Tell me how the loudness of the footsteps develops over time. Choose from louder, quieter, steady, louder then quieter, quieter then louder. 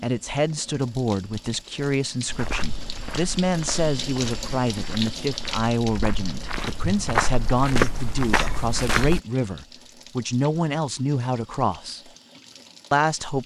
louder.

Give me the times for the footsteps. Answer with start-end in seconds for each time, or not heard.
2.2-9.2.